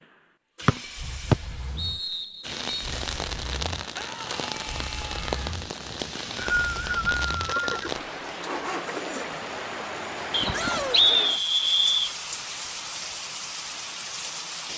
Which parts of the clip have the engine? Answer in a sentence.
You can hear the engine from 0.0 to 10.9 s.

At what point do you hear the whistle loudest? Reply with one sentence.
The loudest moment of the whistle is at 11 seconds.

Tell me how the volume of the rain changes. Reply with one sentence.
The loudness of the rain stays about the same.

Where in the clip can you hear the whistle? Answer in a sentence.
You can hear the whistle from 0.7 to 2.9 s, from 6.0 to 7.7 s and from 10.3 to 12.2 s.